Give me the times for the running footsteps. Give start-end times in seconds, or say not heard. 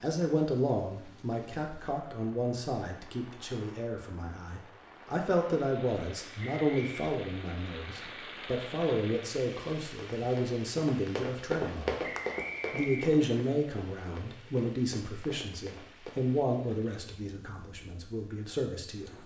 9.9-16.2.